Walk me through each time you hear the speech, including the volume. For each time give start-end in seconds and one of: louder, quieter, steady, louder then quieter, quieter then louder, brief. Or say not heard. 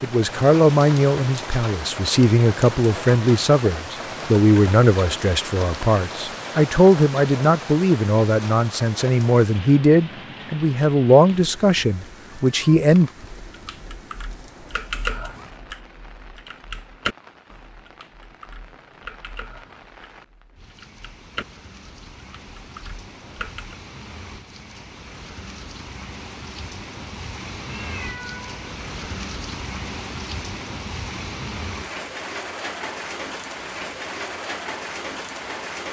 0.0-13.1 steady.